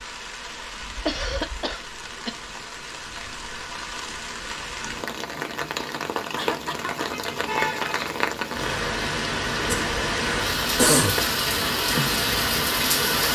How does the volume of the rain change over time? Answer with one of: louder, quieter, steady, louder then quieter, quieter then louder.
louder.